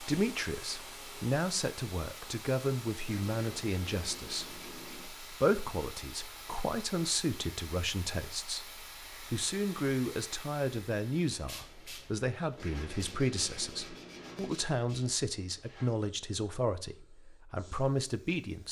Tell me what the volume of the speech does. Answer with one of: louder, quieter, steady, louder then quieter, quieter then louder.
steady.